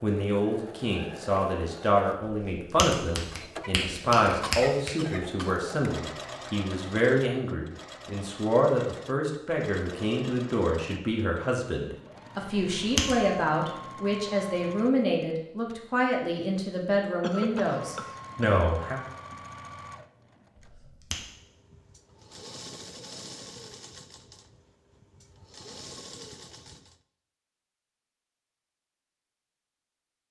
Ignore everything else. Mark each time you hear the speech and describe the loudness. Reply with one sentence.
You can hear the speech from 0.0 to 19.0 s, at a steady volume.